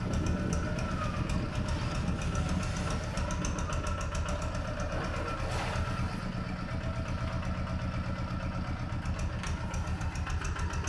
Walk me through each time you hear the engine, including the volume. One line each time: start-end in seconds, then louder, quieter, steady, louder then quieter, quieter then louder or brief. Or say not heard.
0.0-10.8 steady.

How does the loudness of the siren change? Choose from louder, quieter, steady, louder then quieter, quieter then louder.
quieter.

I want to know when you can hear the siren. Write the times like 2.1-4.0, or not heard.
0.0-5.4.